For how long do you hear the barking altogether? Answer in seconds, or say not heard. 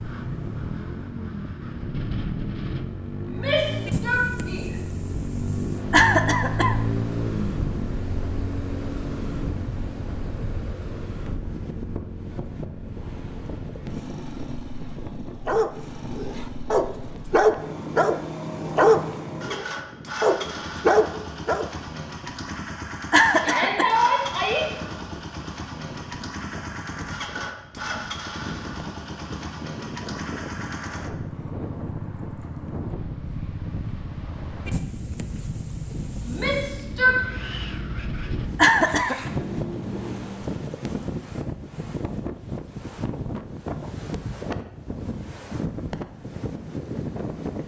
6 s.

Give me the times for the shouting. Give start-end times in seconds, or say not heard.
3.2-4.8, 23.4-24.6, 36.2-37.1.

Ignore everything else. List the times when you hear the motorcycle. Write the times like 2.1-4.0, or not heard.
0.0-40.5.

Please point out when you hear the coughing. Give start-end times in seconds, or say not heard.
5.9-6.8, 23.1-23.9, 38.5-39.3.